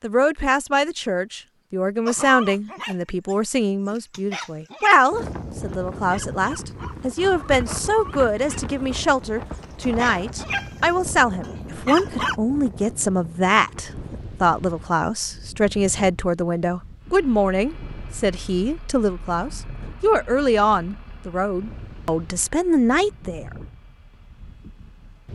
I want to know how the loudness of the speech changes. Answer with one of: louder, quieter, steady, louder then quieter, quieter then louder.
steady.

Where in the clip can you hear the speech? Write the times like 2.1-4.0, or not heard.
0.0-23.4.